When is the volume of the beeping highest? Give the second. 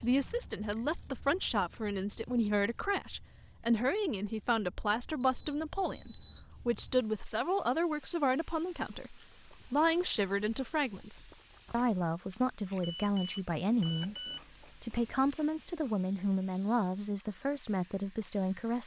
6 s.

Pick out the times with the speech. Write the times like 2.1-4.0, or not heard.
0.0-18.8.